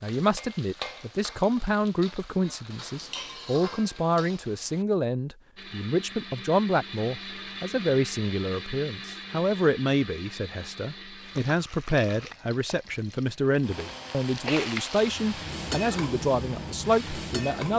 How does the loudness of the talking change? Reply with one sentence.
The loudness of the talking stays about the same.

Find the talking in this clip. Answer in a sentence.
You can hear the talking from 0.0 to 17.7 s.